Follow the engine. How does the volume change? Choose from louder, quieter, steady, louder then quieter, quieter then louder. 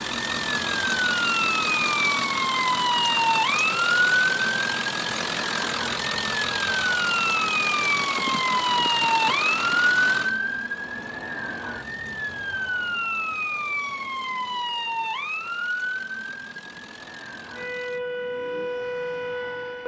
quieter.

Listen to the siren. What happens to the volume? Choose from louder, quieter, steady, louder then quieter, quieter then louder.
quieter.